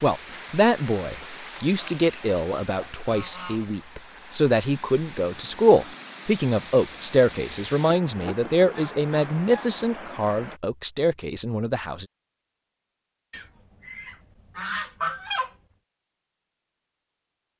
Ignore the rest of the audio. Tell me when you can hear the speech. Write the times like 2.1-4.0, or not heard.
0.0-12.1.